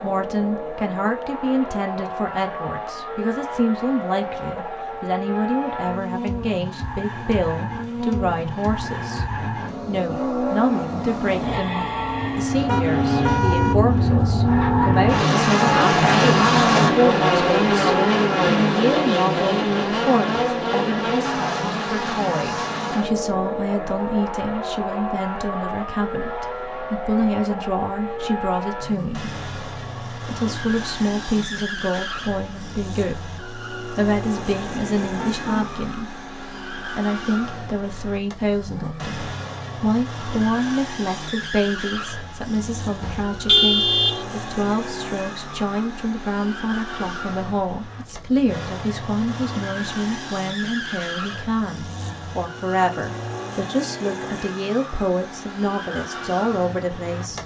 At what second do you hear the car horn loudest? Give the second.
44 s.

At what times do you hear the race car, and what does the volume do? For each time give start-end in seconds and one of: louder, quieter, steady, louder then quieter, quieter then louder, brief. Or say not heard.
0.0-57.4 louder then quieter.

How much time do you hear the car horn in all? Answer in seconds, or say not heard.
4 s.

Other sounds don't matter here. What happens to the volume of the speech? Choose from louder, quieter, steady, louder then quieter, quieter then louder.
steady.